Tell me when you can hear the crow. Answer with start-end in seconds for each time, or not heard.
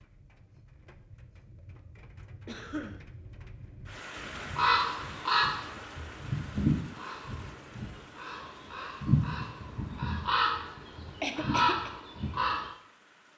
4.2-12.7.